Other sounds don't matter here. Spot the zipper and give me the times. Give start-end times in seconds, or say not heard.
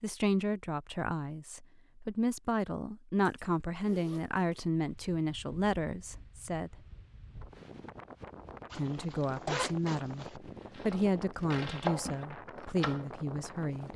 3.2-4.6, 8.7-10.3.